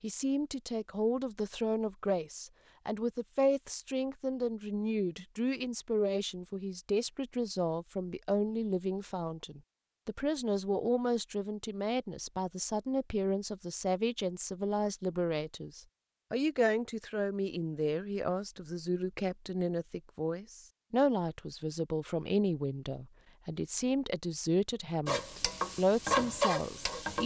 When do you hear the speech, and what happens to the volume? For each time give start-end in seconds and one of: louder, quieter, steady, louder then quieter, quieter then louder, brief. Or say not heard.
0.0-27.2 steady.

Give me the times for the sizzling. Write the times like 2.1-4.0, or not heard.
25.1-27.2.